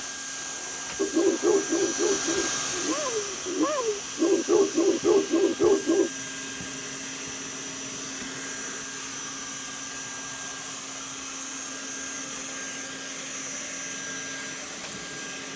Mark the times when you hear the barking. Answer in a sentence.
The barking can be heard from 0.9 to 6.1 s.